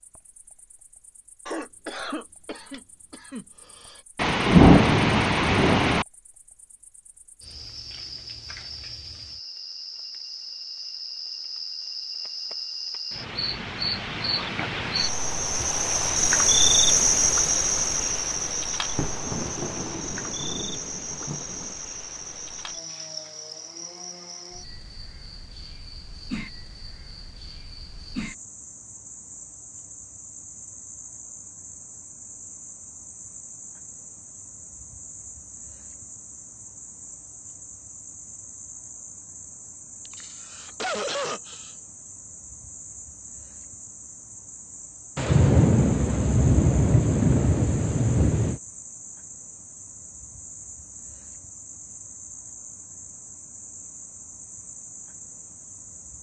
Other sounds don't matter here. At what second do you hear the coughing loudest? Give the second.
41 s.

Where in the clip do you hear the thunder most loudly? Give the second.
5 s.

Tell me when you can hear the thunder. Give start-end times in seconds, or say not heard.
4.2-6.0, 18.9-21.8, 45.1-48.6.